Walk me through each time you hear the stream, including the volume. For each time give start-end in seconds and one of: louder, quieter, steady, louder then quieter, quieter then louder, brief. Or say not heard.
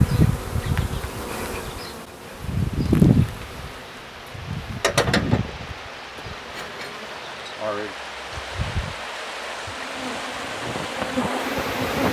2.2-12.0 louder.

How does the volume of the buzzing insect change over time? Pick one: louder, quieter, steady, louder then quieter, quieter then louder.
louder then quieter.